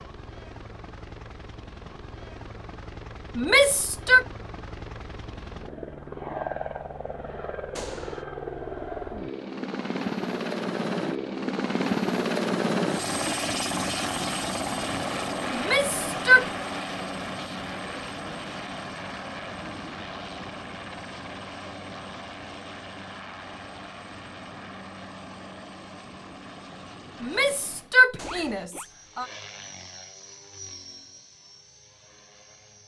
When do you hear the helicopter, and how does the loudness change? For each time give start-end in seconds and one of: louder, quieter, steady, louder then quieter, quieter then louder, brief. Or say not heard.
0.0-32.8 louder then quieter.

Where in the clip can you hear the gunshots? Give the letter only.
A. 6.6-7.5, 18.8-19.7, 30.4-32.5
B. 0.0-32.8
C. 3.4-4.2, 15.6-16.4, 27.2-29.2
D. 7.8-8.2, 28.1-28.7
D.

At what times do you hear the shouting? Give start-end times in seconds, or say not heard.
3.4-4.2, 15.6-16.4, 27.2-29.2.